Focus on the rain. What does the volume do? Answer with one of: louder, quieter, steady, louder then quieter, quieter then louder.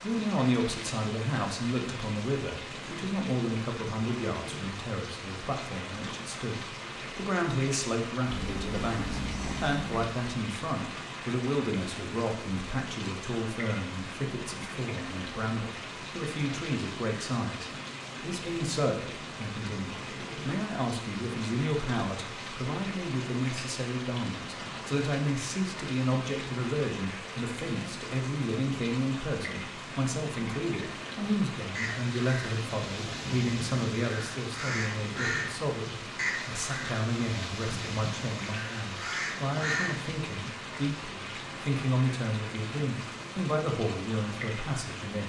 steady.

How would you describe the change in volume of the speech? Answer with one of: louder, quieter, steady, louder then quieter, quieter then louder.
steady.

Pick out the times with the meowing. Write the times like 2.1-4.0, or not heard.
8.2-10.1.